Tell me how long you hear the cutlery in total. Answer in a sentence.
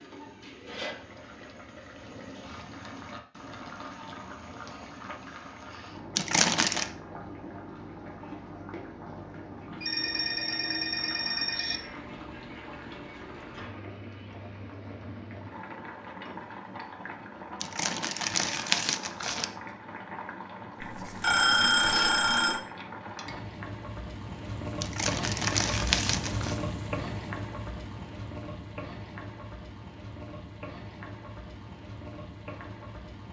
The cutlery can't be heard in this clip.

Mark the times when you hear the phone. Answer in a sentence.
You can hear the phone from 9.8 to 11.8 s and from 20.8 to 22.6 s.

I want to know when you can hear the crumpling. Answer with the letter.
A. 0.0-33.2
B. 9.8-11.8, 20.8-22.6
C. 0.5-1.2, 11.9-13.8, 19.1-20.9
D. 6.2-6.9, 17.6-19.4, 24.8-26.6
D.